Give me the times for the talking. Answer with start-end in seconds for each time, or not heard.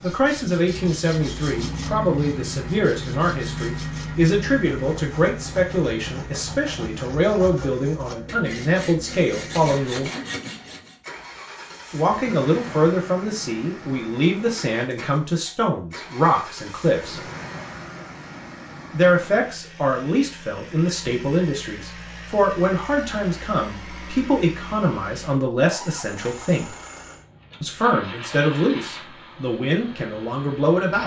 0.0-10.1, 11.9-17.2, 18.9-26.7, 27.6-31.0.